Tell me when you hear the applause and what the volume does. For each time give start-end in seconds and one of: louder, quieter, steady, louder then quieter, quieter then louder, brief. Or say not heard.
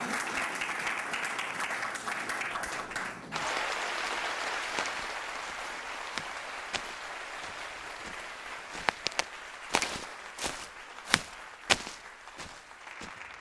0.0-13.3 quieter.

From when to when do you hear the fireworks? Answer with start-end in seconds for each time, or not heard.
not heard.